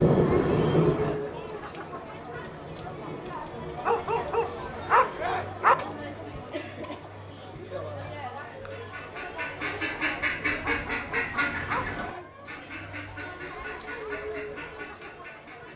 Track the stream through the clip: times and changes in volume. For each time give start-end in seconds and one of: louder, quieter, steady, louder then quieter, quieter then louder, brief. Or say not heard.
not heard.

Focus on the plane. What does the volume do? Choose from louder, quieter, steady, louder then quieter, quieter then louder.
quieter.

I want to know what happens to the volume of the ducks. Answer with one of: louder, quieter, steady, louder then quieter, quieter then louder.
quieter.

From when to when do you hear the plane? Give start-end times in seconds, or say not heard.
0.0-5.4.